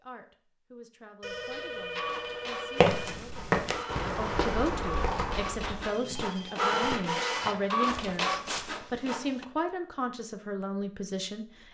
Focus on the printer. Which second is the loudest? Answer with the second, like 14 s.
7 s.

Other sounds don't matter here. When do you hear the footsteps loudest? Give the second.
3 s.